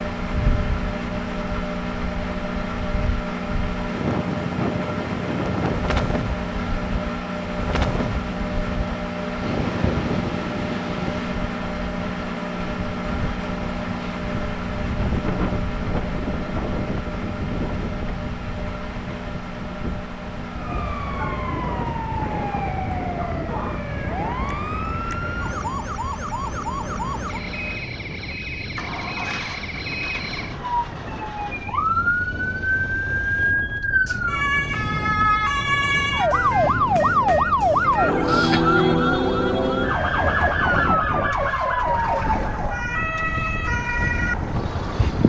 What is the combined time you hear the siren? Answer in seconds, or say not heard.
25 s.